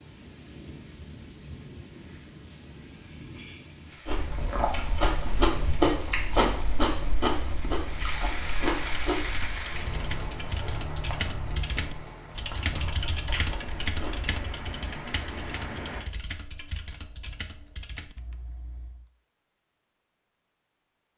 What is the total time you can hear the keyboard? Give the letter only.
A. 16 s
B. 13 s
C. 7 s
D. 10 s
D.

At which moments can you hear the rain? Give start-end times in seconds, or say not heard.
0.0-16.1.